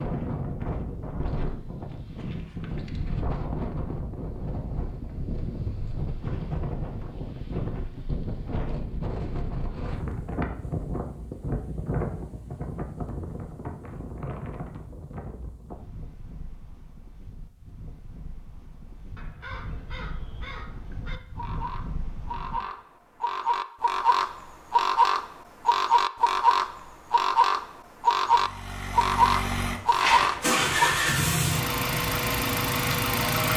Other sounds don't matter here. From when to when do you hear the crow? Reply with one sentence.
The crow can be heard from 19.1 to 31.0 s.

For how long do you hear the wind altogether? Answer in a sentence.
The wind can be heard for 23 seconds in total.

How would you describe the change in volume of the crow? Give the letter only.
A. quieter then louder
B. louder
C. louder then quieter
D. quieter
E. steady
B.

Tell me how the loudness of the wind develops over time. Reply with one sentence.
The loudness of the wind goes down.